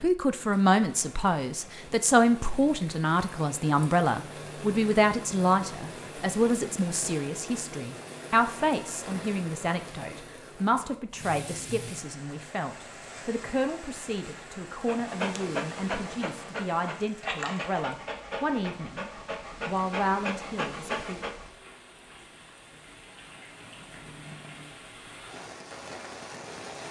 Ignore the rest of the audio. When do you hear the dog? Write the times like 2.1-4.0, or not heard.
14.8-21.4.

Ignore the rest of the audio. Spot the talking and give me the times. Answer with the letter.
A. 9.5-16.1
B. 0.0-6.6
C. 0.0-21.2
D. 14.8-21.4
C.